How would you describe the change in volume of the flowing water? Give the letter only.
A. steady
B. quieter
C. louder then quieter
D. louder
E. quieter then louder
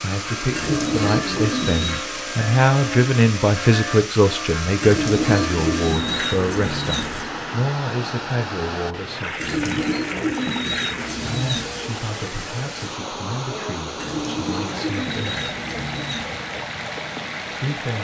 A.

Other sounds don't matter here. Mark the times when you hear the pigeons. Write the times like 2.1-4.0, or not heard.
0.5-2.0, 4.8-7.3, 9.3-11.9, 13.9-16.4.